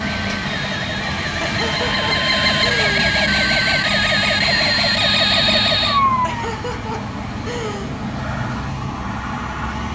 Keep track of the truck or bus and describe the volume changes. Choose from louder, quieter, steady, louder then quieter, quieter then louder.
steady.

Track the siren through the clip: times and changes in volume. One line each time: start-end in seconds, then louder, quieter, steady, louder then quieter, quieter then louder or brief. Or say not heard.
0.0-6.5 louder
7.7-9.9 brief.